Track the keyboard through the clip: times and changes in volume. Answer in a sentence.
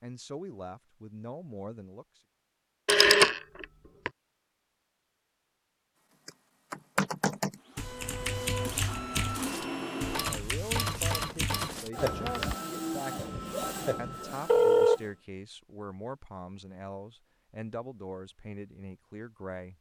The keyboard can be heard from 6.2 to 12.6 s, getting quieter.